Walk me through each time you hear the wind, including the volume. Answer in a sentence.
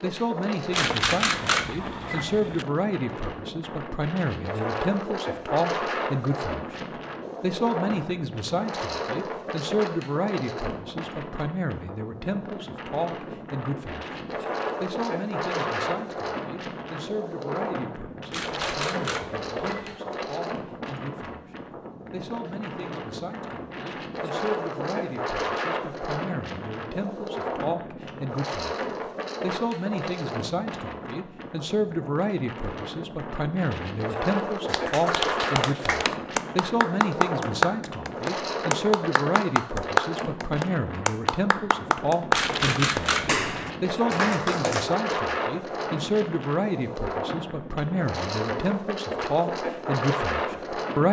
You can hear the wind from 0.0 to 51.0 s, at a steady volume.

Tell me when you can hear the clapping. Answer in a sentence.
The clapping can be heard from 34.6 to 45.0 s.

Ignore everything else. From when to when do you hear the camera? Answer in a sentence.
You can hear the camera from 0.7 to 2.6 s, from 18.3 to 20.0 s and from 42.3 to 43.5 s.